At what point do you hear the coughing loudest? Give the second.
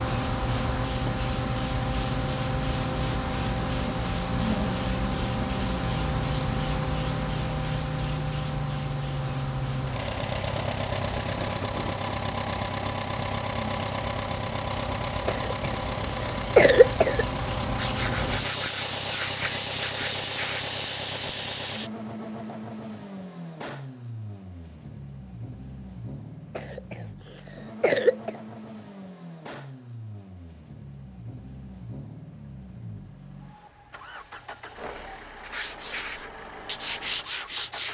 17 s.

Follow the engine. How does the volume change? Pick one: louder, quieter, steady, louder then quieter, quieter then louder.
quieter.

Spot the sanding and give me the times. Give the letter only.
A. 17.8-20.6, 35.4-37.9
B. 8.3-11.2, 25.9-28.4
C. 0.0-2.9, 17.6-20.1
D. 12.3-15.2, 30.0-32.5
A.